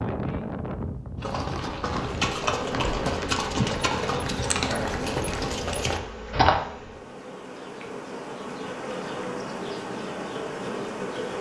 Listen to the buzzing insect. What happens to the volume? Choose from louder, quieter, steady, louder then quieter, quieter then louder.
quieter then louder.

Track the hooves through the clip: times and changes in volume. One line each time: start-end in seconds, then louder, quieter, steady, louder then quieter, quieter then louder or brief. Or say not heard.
1.2-6.5 steady.